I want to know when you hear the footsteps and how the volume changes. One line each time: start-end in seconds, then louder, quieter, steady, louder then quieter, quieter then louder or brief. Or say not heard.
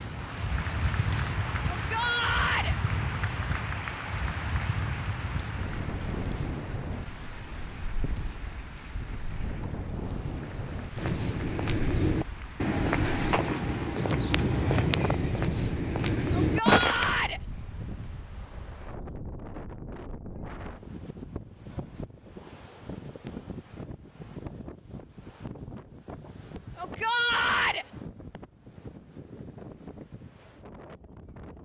10.9-17.1 steady.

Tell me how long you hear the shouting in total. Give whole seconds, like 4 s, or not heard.
3 s.